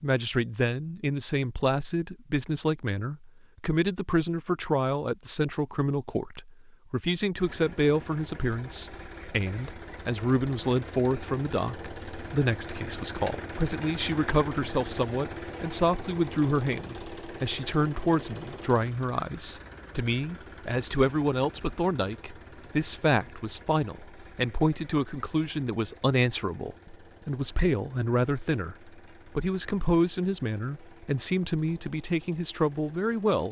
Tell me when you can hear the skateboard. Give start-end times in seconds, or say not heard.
not heard.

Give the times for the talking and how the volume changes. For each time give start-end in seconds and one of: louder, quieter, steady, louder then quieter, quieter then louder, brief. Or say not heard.
0.0-33.4 steady.